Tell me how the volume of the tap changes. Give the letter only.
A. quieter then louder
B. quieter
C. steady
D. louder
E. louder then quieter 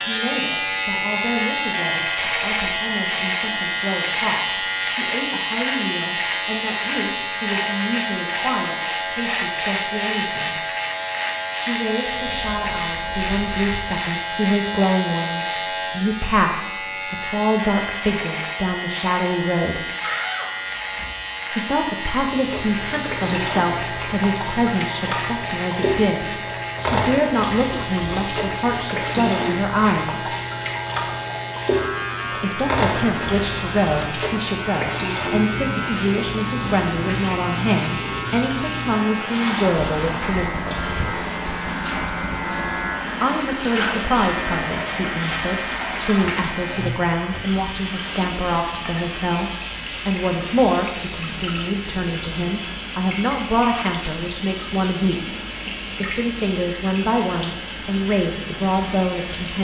C.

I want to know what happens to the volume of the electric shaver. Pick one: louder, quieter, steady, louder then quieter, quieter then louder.
quieter.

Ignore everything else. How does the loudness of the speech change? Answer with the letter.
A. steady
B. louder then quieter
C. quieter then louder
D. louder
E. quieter
D.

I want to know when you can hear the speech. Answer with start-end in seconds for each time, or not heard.
0.0-10.6, 11.6-19.8, 21.5-30.3, 32.4-40.9, 43.2-55.3, 56.0-59.5.